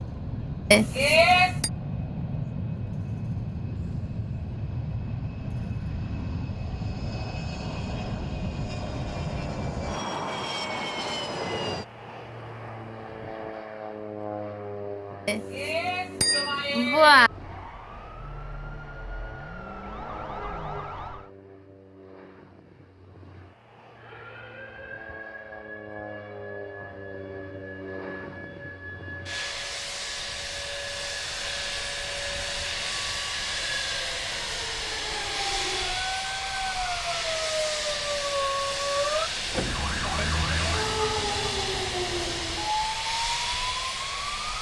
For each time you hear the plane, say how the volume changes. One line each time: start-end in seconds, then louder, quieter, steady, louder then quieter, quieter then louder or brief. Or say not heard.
0.0-44.5 quieter then louder.